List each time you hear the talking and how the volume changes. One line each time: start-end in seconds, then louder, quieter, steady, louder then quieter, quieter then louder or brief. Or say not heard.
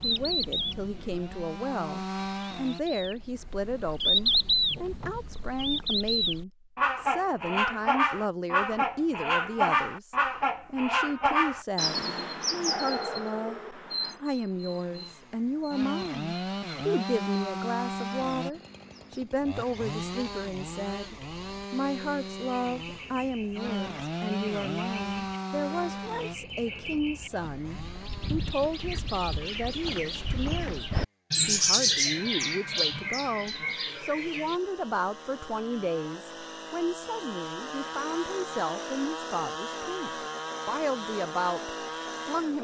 0.0-42.5 steady.